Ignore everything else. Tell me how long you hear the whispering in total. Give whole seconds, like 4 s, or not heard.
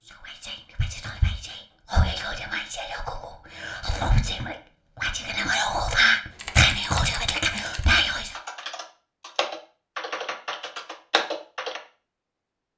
8 s.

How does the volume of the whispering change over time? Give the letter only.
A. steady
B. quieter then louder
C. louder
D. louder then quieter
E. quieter
C.